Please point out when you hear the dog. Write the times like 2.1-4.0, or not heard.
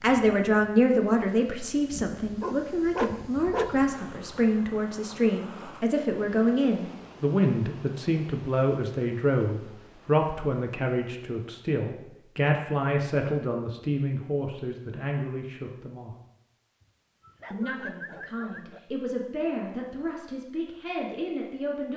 1.9-3.7, 17.2-18.8.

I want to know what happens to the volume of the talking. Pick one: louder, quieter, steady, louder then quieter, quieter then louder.
quieter.